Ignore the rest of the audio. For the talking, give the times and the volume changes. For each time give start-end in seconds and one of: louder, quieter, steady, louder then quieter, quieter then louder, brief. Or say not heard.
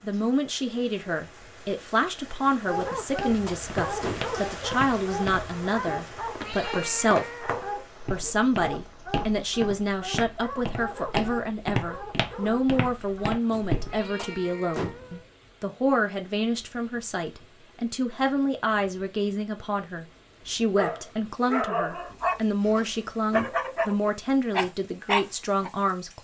0.0-7.5 steady
8.1-26.1 steady.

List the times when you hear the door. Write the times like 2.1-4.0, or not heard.
2.8-4.3, 13.5-15.2, 22.1-23.7.